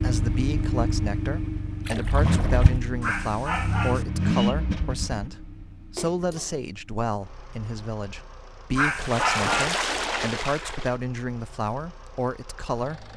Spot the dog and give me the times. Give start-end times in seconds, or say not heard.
3.0-4.0, 8.8-9.8.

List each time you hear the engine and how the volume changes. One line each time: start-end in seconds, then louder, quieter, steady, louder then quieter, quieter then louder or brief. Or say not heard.
0.0-13.1 quieter.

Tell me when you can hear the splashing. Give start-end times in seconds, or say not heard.
1.9-2.8, 6.0-6.5, 9.0-10.9.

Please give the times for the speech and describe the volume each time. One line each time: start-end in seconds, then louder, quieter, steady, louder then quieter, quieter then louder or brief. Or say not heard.
0.0-13.1 steady.